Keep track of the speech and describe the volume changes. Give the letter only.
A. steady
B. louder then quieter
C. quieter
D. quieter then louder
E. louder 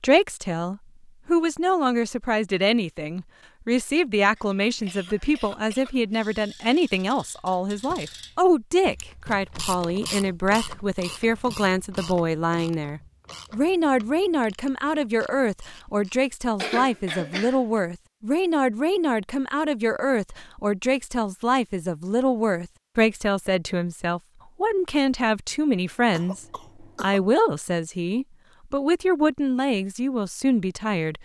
A.